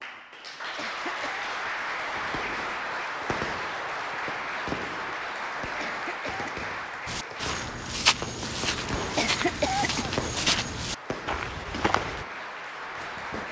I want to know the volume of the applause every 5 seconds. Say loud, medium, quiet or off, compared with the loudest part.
loud, loud, medium.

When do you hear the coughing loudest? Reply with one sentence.
The loudest moment of the coughing is at 10 seconds.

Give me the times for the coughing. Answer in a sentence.
The coughing can be heard from 0.8 to 1.5 s, from 5.8 to 6.8 s and from 9.2 to 10.2 s.